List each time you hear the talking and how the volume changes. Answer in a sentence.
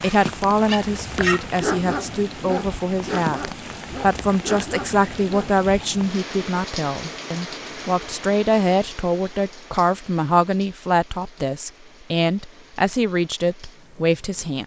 You can hear the talking from 0.0 to 14.6 s, at a steady volume.